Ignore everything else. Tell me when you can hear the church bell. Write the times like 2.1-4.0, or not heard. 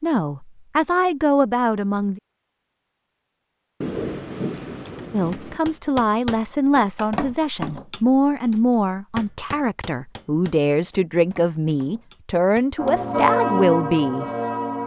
12.8-14.8.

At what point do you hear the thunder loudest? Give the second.
4 s.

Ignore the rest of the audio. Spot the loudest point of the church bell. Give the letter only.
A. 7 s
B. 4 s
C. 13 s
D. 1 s
C.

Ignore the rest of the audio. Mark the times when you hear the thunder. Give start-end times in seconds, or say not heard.
3.8-5.6.